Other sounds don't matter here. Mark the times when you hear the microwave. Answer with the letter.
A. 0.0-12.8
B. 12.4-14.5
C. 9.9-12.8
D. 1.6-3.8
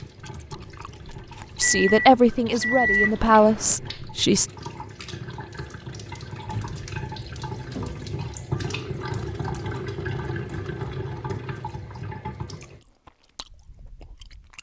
D.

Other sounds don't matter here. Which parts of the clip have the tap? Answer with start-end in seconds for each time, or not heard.
0.0-12.8.